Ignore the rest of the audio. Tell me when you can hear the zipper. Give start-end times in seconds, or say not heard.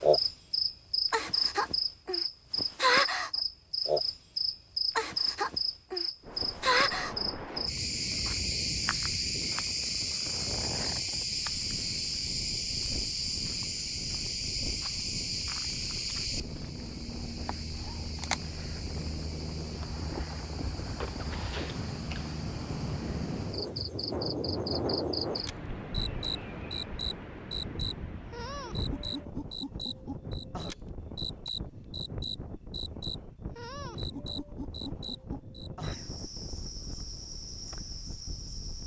not heard.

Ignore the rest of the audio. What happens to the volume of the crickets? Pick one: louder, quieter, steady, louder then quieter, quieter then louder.
quieter.